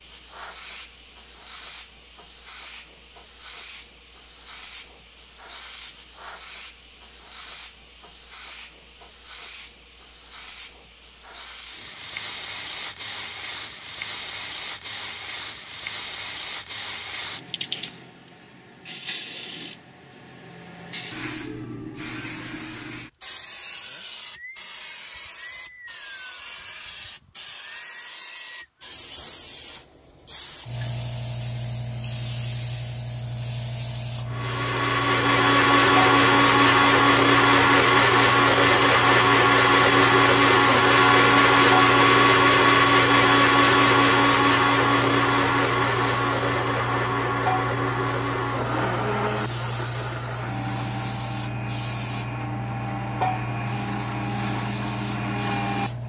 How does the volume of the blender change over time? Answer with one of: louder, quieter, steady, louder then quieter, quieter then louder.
quieter.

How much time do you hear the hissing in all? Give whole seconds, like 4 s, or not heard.
56 s.